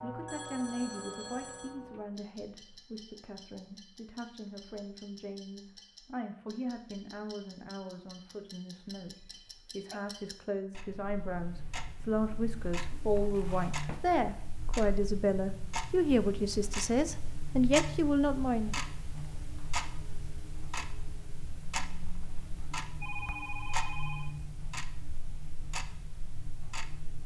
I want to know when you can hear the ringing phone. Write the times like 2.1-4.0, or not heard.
0.2-1.8, 9.1-10.0, 23.0-24.4.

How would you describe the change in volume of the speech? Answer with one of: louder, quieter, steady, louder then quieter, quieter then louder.
louder.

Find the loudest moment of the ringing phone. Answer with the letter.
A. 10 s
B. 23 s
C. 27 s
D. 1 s
B.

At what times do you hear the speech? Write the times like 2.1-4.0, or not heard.
0.0-18.8.